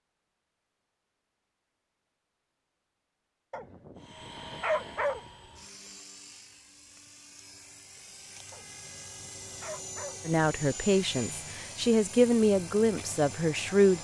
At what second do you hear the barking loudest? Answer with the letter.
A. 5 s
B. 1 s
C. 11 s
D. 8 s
A.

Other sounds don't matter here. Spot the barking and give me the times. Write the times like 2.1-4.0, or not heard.
3.5-5.2, 8.5-10.3.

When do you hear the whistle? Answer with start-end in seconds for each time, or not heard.
not heard.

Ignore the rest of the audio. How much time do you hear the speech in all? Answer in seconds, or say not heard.
4 s.